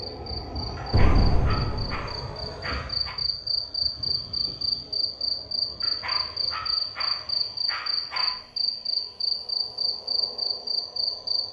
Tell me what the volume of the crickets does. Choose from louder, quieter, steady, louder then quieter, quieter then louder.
louder.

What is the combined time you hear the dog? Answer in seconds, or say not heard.
5 s.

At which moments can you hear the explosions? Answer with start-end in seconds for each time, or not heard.
0.9-2.1.